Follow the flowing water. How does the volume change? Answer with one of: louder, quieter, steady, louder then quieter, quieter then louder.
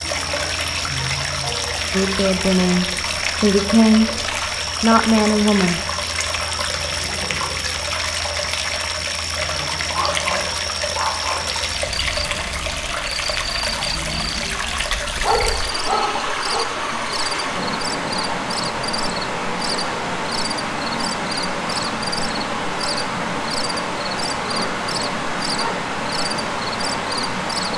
steady.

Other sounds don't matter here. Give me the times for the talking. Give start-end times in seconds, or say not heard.
1.9-5.8.